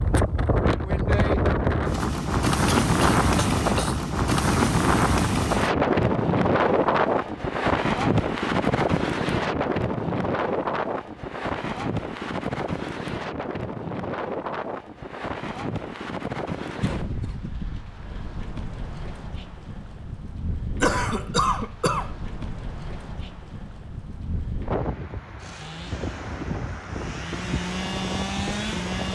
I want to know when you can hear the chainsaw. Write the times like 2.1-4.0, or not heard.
25.4-29.1.